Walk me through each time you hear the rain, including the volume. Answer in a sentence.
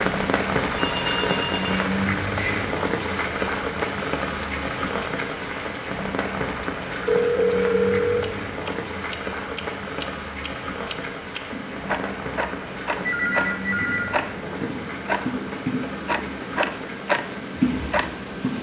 The rain can be heard from 0.0 to 18.5 s, getting quieter.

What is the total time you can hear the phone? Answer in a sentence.
The phone can be heard for 4 seconds in total.